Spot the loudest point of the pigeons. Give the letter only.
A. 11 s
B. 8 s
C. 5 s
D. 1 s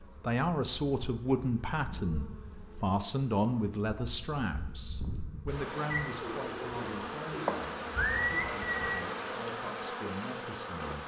B.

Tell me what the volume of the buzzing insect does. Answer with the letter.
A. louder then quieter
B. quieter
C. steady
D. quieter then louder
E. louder
D.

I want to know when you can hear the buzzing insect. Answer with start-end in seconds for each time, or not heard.
0.0-11.0.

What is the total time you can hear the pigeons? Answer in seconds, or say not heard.
3 s.